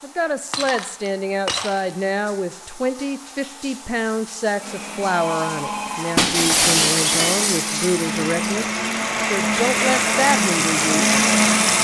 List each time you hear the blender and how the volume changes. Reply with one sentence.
The blender can be heard from 4.5 to 11.7 s, getting louder.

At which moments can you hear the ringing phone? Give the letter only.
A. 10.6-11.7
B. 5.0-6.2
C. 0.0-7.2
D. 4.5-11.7
B.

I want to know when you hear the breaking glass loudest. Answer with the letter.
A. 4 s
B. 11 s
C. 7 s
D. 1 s
C.